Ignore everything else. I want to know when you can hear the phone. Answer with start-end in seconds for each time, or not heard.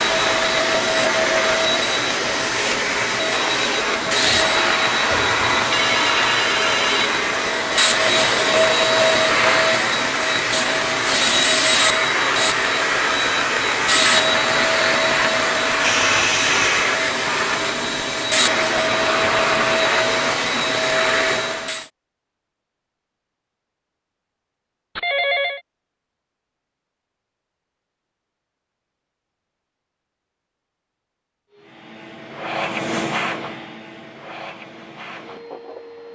5.1-7.1, 15.8-16.9, 24.9-25.6.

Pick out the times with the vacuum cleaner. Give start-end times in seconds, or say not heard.
0.0-21.9, 31.5-36.1.